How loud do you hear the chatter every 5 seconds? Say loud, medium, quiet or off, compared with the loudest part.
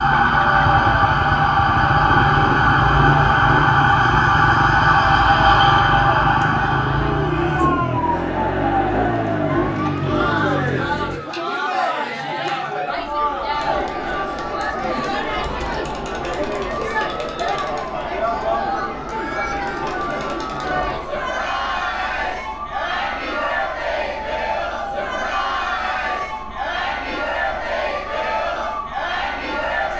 medium, loud, loud, loud, loud, loud.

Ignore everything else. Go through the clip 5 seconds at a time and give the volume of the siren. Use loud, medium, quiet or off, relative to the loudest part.
loud, loud, quiet, quiet, quiet, quiet.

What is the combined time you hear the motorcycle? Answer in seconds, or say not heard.
11 s.